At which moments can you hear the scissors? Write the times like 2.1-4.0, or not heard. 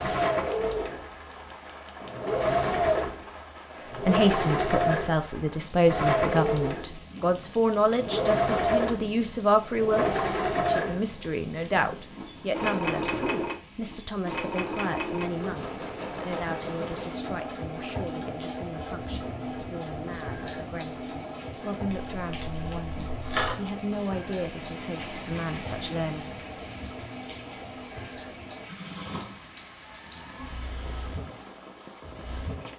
21.9-23.6.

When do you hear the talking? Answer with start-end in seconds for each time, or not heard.
4.0-26.3.